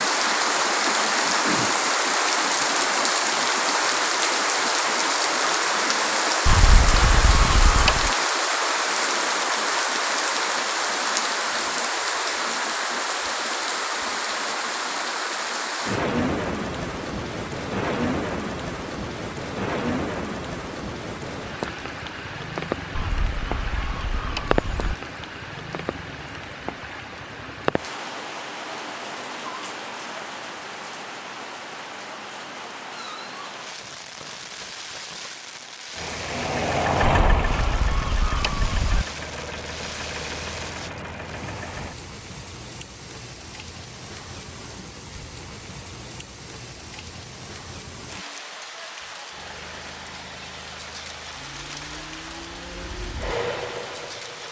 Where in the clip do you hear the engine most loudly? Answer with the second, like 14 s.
37 s.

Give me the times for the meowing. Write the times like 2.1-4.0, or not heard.
not heard.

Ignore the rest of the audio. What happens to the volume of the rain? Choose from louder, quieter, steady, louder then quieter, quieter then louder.
quieter.